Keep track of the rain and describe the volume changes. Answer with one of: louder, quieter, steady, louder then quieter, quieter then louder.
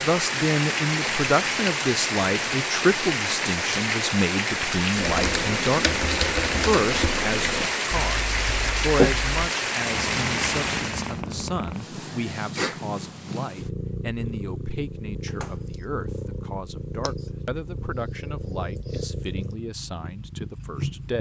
steady.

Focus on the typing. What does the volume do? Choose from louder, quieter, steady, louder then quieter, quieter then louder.
quieter.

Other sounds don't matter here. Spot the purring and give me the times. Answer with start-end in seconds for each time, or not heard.
9.8-21.1.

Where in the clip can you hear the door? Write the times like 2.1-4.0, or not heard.
15.2-15.7.